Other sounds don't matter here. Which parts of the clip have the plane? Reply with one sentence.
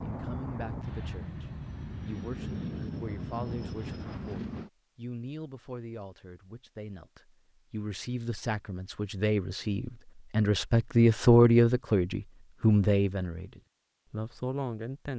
You can hear the plane from 0.0 to 4.7 s.